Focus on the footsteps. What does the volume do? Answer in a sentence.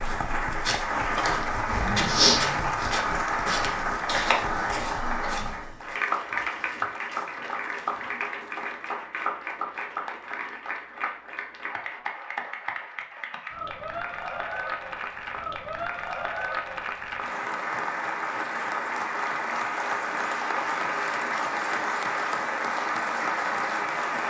The volume of the footsteps goes up, then down.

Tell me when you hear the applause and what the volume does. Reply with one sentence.
The applause can be heard from 0.0 to 24.2 s, getting quieter then louder.